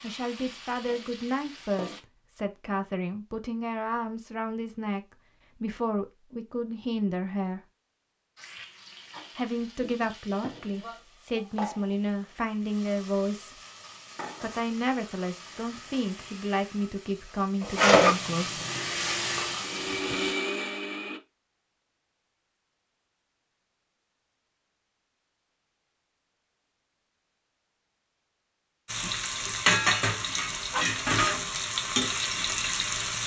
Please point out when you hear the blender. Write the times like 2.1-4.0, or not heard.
18.6-21.2.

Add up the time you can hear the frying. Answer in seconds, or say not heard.
18 s.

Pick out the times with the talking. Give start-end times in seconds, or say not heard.
0.0-5.0, 5.6-7.6, 9.3-13.6, 14.4-18.6.